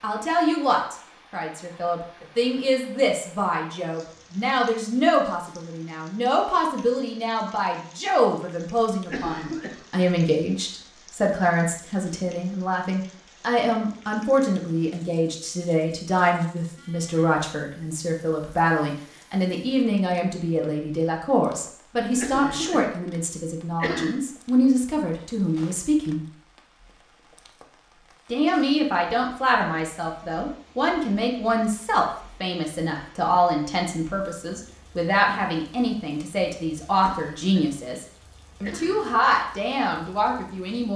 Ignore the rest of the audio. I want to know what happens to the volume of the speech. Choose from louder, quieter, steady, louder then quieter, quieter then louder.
steady.